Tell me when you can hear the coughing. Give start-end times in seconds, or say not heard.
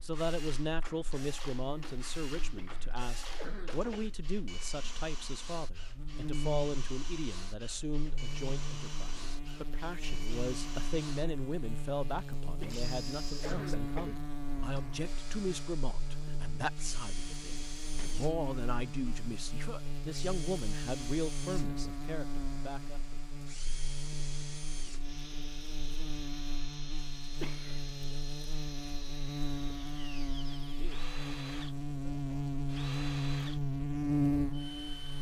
2.5-4.1, 12.6-14.2, 27.4-28.1.